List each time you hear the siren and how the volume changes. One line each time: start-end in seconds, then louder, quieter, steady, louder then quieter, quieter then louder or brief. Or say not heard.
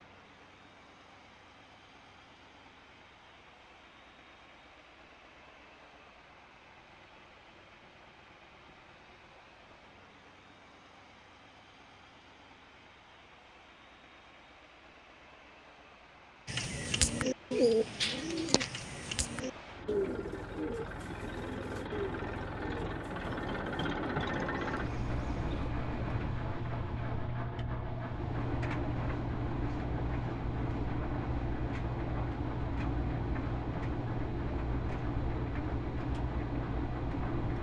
not heard.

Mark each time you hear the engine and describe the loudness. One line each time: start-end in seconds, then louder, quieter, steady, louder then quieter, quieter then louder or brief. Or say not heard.
0.0-37.5 louder.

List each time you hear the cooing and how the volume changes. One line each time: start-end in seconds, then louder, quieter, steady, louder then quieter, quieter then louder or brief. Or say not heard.
16.4-25.7 quieter.